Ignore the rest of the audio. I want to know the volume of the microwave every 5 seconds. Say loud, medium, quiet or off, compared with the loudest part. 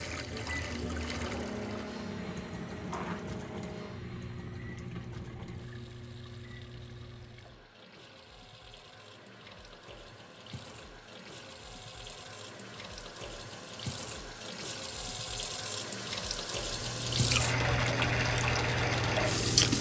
loud, medium, off, loud.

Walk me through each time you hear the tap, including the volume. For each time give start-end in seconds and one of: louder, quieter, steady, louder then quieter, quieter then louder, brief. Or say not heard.
0.0-19.7 quieter then louder.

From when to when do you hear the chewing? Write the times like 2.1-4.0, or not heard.
16.6-19.7.